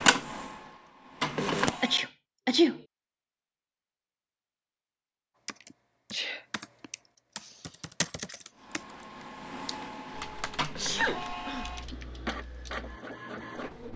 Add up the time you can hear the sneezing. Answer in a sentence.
The sneezing can be heard for 3 seconds in total.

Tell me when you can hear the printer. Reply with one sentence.
The printer can be heard from 0.0 to 2.0 s and from 8.6 to 13.9 s.